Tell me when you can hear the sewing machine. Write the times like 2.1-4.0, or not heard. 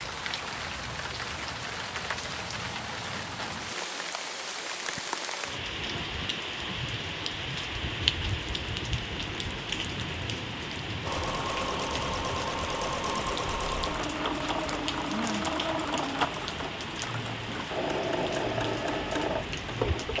11.1-20.1.